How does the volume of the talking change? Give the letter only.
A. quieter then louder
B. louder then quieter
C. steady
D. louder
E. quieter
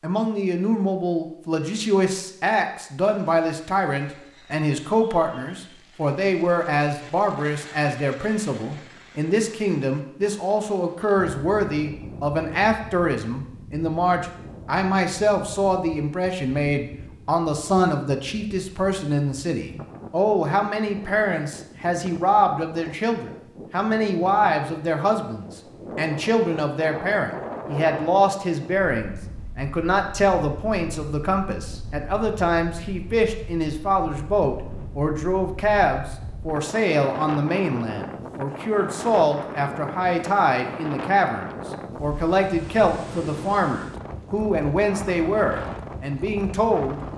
C.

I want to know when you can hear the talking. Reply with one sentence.
The talking can be heard from 0.0 to 47.0 s.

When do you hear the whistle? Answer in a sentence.
You can't hear the whistle here.